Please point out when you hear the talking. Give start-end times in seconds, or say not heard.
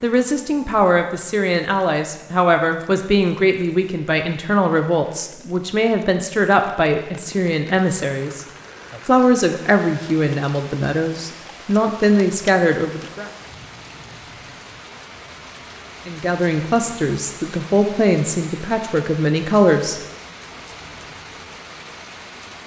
0.0-8.4, 9.1-13.3, 16.1-19.9.